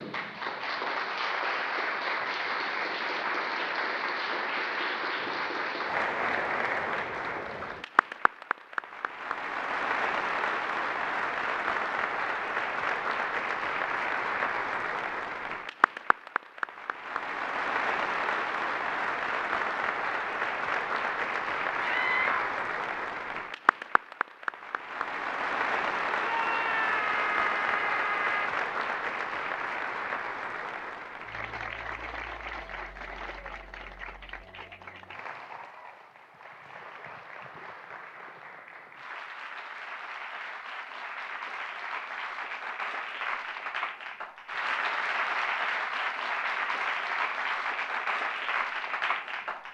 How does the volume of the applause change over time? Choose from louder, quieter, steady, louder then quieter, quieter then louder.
quieter then louder.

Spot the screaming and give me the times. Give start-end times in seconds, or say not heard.
21.8-22.4, 26.1-28.5.